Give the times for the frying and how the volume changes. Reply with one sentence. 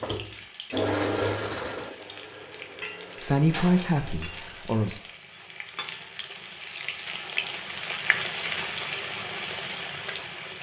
You can hear the frying from 0.0 to 10.5 s, getting louder.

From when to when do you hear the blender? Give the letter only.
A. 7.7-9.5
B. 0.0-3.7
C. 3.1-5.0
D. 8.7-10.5
B.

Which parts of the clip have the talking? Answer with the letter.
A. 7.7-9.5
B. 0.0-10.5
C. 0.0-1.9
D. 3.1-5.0
D.